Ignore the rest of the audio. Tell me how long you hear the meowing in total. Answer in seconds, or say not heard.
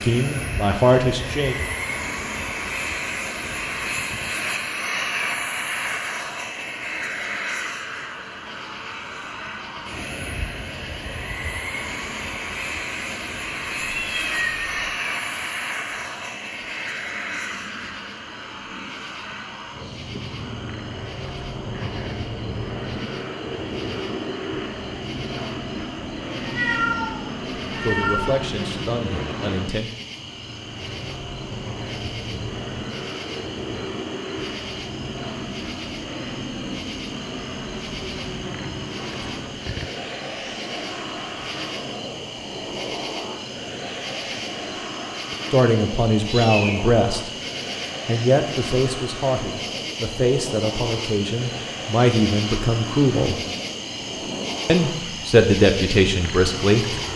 4 s.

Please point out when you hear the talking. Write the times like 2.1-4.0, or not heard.
0.0-1.6, 27.8-29.9, 45.5-47.3, 48.0-53.4, 54.6-56.9.